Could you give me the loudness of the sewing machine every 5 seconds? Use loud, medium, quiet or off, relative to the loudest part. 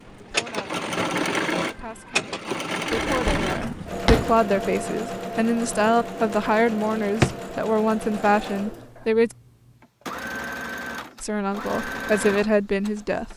loud, medium, medium.